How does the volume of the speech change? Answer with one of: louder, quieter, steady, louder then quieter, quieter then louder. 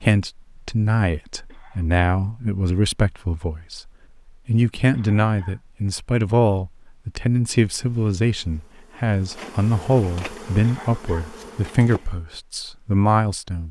steady.